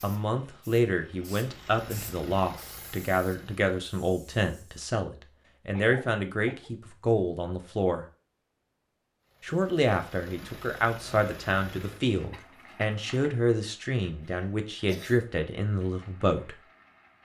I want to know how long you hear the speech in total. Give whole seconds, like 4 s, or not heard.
15 s.